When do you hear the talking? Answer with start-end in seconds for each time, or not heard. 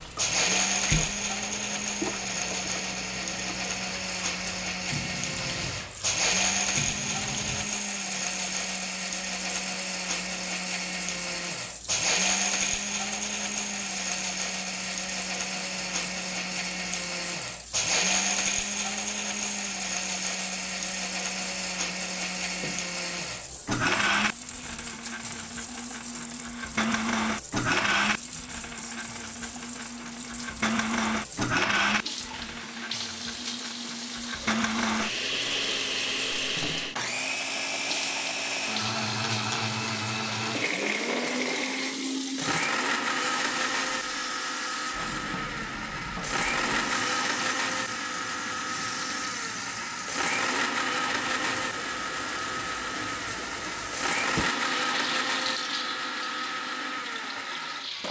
not heard.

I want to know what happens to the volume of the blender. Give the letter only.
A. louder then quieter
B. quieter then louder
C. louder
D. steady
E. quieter
D.